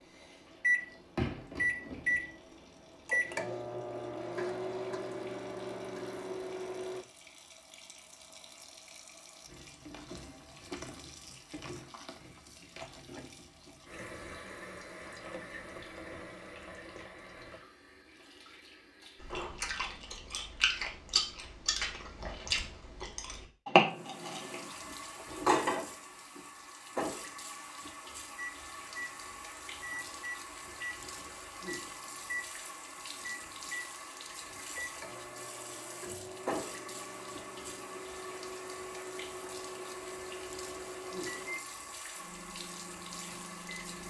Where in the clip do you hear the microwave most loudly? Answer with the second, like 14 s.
1 s.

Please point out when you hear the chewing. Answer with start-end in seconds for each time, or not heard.
19.2-24.6.